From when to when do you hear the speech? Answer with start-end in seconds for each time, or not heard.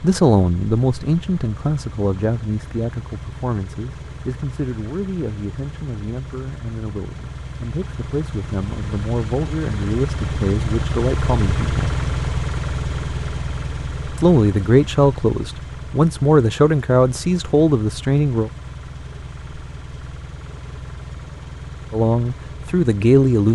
0.0-11.9, 14.2-18.5, 21.9-23.5.